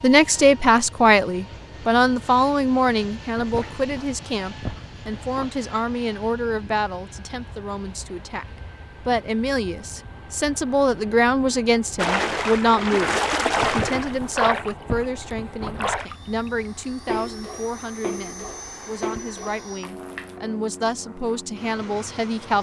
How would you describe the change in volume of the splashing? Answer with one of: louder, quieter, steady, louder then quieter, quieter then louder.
quieter.